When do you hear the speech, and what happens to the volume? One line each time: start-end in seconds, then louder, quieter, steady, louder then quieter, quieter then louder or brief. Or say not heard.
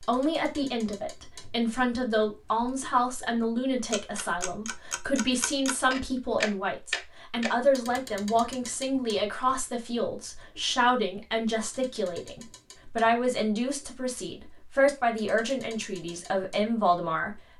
0.0-17.4 steady.